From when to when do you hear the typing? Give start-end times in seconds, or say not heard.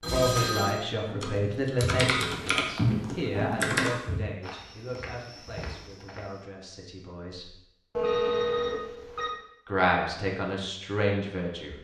1.2-4.0.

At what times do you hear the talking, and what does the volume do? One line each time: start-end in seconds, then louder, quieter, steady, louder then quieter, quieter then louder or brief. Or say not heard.
0.1-7.5 quieter
9.7-11.7 brief.